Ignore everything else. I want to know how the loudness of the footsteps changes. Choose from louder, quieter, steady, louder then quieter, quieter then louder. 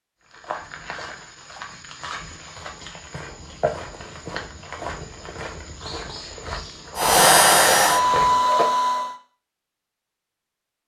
louder.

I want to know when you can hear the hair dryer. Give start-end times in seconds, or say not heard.
7.0-9.2.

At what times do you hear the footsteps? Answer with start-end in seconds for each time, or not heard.
0.3-8.7.